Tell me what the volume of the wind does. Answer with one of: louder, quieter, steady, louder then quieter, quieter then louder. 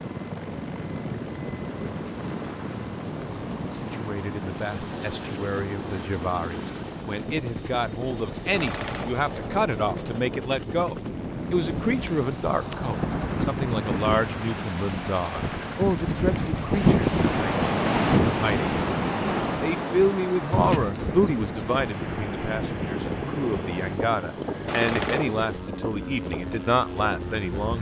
louder then quieter.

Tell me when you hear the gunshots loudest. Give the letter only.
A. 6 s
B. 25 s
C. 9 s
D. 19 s
B.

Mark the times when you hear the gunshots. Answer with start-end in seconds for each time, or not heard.
8.5-9.2, 24.6-25.4.